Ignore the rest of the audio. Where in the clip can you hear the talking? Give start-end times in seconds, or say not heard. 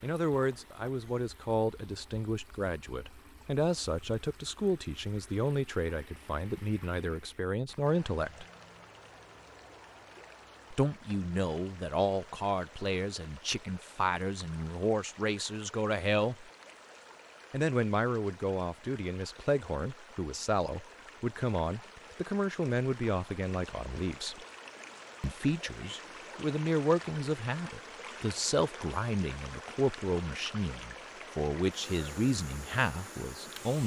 0.0-8.4, 10.7-16.4, 17.5-24.4, 25.2-33.8.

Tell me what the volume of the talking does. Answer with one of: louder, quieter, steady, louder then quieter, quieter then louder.
steady.